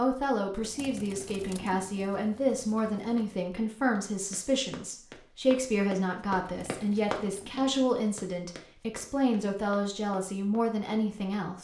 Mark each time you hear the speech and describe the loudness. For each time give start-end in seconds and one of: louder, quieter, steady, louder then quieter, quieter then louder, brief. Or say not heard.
0.0-11.6 steady.